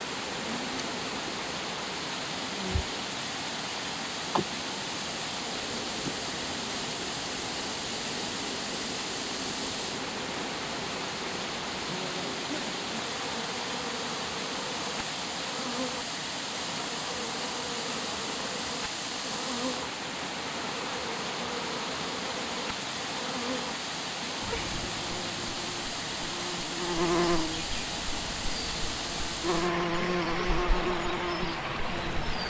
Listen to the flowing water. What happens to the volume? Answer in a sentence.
The volume of the flowing water stays about the same.